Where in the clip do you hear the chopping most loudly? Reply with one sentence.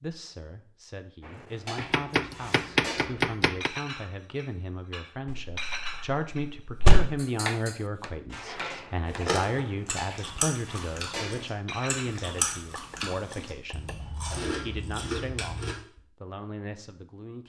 The volume of the chopping peaks at 3 seconds.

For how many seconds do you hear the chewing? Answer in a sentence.
You can hear the chewing for 7 seconds altogether.